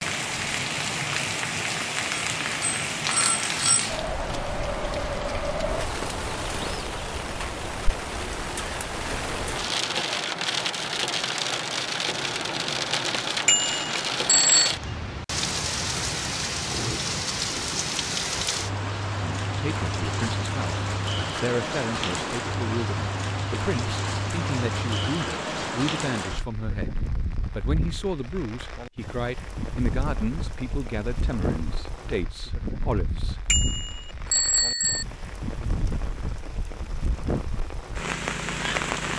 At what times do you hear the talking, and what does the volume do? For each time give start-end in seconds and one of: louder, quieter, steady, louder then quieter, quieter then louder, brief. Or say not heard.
19.2-33.5 steady.